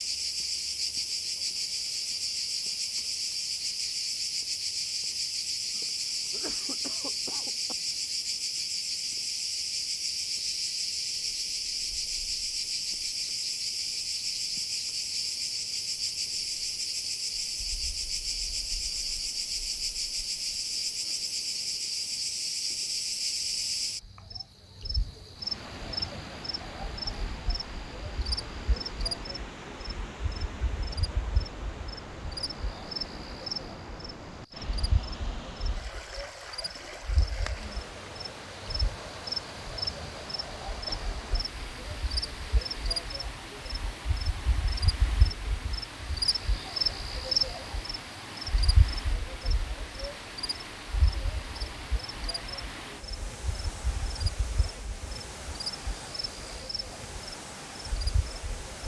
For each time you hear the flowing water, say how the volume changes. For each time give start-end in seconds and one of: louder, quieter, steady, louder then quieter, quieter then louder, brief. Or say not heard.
25.4-58.8 steady.